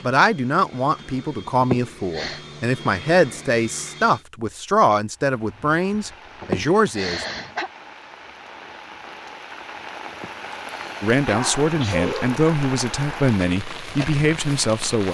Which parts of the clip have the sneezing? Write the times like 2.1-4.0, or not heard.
1.6-2.4, 6.4-7.7, 10.1-12.4.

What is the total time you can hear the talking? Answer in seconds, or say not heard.
11 s.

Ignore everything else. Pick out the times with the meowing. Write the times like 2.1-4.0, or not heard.
not heard.